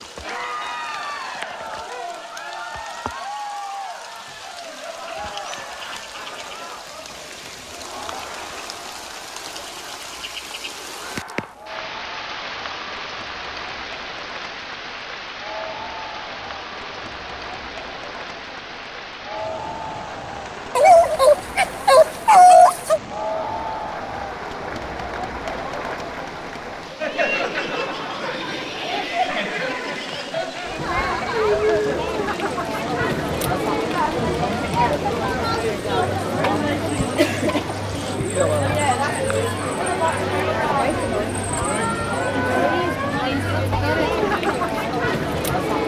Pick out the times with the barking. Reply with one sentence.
The barking can be heard from 20.8 to 23.0 s.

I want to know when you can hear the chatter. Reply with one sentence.
The chatter can be heard from 0.1 to 45.8 s.